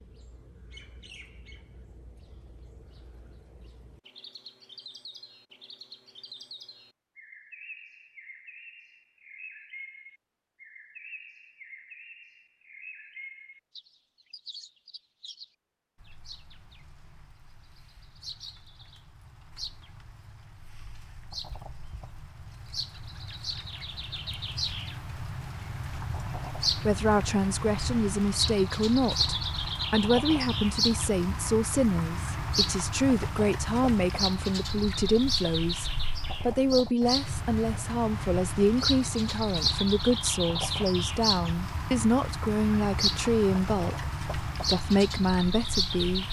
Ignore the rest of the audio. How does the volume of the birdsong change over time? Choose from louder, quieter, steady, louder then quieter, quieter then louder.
louder.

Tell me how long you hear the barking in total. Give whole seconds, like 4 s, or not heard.
not heard.